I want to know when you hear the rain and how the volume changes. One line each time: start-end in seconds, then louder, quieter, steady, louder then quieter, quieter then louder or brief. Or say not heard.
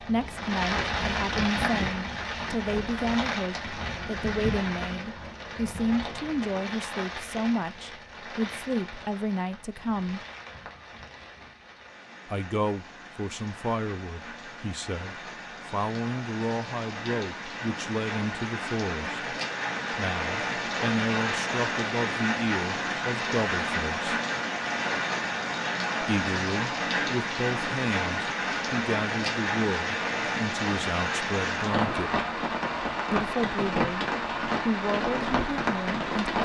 0.0-36.4 quieter then louder.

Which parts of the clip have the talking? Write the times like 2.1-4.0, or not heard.
0.0-10.2, 12.2-19.2, 19.9-24.1, 26.0-32.1, 33.1-36.4.